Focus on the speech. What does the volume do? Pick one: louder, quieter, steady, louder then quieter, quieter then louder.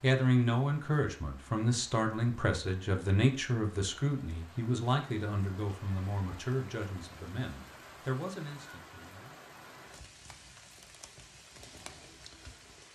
quieter.